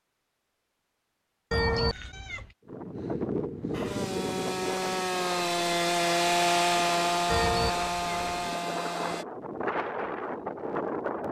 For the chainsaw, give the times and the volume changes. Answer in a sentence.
You can hear the chainsaw from 3.7 to 9.2 s, getting louder then quieter.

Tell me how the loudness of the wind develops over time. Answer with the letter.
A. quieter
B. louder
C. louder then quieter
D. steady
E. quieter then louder
E.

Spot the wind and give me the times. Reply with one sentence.
You can hear the wind from 2.6 to 11.2 s.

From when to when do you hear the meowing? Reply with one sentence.
You can hear the meowing from 1.5 to 2.5 s and from 7.2 to 8.3 s.